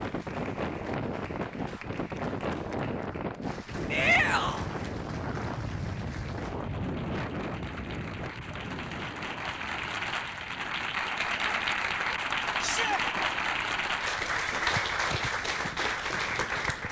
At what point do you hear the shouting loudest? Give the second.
4 s.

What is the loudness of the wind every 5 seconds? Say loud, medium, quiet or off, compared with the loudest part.
loud, loud, quiet, quiet.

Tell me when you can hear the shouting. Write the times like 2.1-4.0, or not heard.
3.9-4.7, 12.6-13.1.